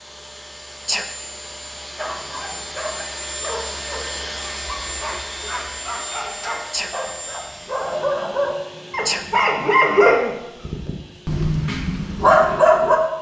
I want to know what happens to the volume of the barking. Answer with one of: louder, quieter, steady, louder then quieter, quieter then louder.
louder.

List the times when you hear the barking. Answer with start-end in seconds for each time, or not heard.
1.9-13.0.